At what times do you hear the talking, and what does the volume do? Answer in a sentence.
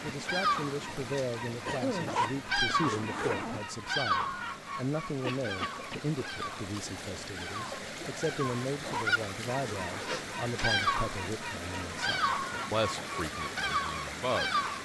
You can hear the talking from 0.0 to 14.8 s, at a steady volume.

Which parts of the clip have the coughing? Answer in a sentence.
The coughing can be heard from 1.1 to 2.2 s, from 5.2 to 6.0 s and from 10.1 to 10.8 s.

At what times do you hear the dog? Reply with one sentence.
You can't hear the dog here.